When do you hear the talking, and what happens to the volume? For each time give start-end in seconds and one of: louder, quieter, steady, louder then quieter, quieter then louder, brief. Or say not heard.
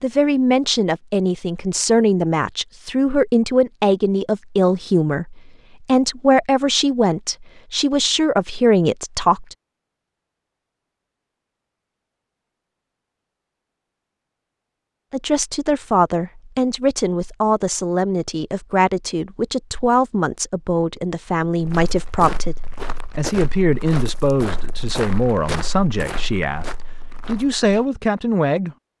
0.0-9.6 steady
15.1-22.6 steady
23.1-28.8 quieter then louder.